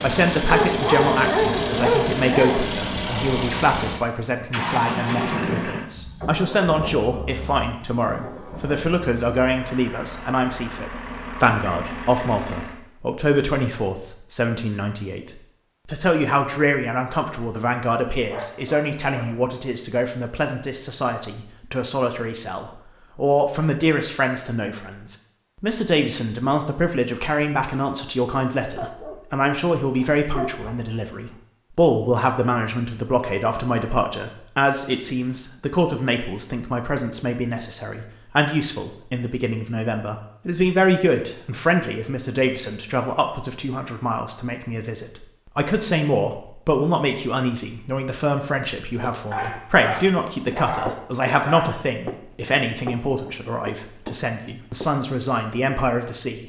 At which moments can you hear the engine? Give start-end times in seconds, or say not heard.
0.0-12.8.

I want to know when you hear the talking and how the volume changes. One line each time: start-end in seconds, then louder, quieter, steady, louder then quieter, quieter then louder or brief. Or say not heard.
0.0-56.4 steady.